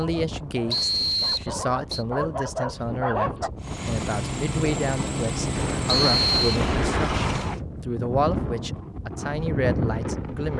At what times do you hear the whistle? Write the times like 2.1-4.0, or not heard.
0.7-2.0, 5.8-6.4.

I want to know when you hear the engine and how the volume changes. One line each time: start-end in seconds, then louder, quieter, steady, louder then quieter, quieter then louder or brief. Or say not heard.
3.5-7.6 steady.